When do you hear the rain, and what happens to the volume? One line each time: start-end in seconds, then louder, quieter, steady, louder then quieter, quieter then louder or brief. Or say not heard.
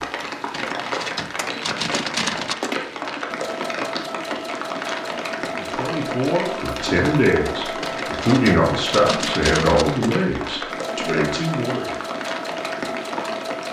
0.0-13.6 steady.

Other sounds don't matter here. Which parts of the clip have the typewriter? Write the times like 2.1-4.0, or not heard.
0.5-2.5, 7.8-9.8.